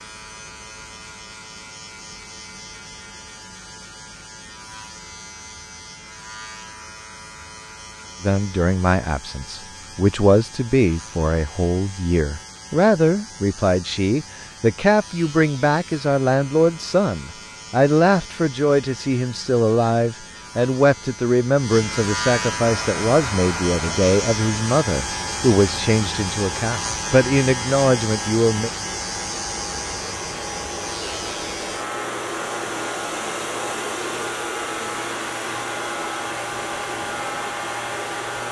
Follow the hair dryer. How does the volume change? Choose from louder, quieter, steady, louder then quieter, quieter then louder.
louder.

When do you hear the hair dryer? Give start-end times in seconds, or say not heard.
22.6-38.4.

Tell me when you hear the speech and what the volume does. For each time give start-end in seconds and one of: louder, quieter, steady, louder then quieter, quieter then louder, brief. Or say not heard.
8.2-28.7 steady.